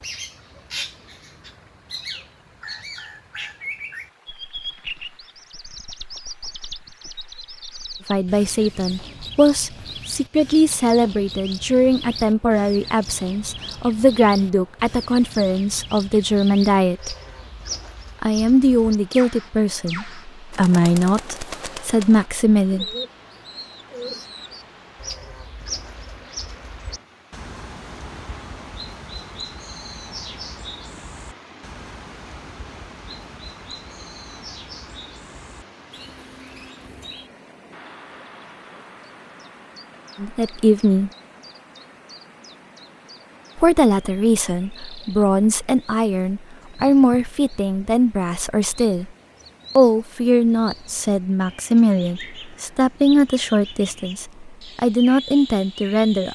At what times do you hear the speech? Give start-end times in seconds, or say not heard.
8.1-17.1, 18.2-22.9, 40.1-41.1, 43.5-49.1, 49.8-56.3.